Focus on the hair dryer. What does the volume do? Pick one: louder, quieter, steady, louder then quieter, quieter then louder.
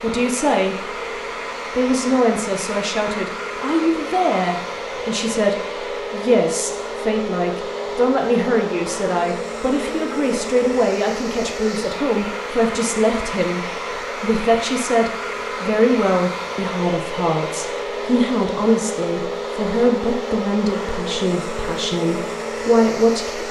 steady.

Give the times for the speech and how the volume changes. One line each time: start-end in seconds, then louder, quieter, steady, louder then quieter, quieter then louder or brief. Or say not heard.
0.0-1.0 brief
1.8-23.4 steady.